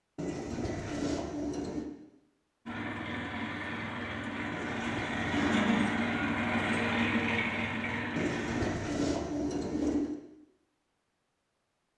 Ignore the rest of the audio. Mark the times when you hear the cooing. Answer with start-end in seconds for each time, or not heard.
0.1-1.9, 4.5-6.1, 8.2-10.2.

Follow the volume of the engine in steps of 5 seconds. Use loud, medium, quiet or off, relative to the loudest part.
medium, loud, off.